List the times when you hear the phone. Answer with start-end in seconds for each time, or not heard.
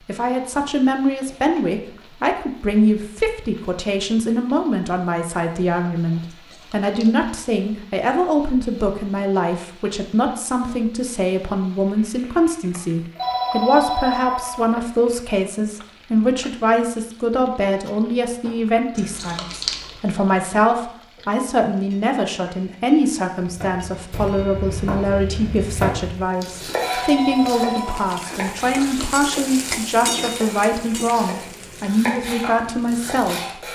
13.2-14.7, 26.8-28.1.